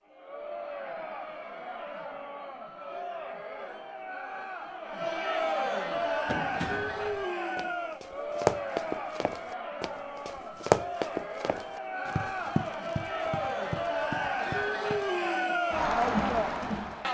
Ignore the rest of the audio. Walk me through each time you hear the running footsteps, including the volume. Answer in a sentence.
The running footsteps can be heard from 5.9 to 15.3 s, getting louder then quieter.